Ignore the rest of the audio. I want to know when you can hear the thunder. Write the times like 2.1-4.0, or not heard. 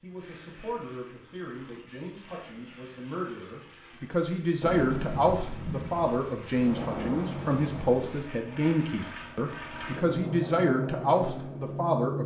4.6-8.2.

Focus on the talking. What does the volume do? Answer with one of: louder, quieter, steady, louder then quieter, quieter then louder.
louder.